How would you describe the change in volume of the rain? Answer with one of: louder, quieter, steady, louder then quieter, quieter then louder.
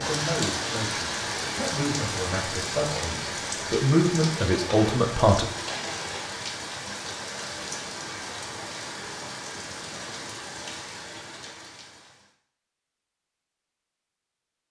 quieter.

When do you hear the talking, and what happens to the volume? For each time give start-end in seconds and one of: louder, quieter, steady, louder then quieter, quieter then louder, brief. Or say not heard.
0.0-5.5 louder.